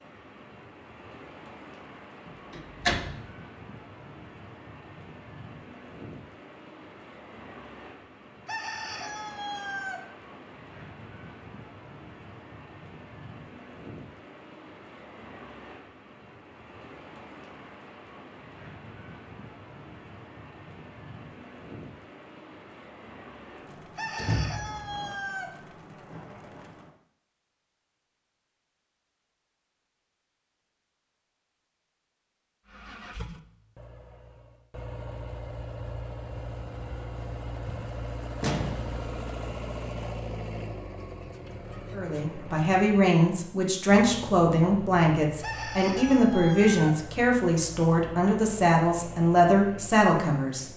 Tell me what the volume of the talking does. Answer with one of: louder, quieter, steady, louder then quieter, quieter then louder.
steady.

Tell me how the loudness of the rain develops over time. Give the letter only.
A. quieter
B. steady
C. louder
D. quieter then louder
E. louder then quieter
B.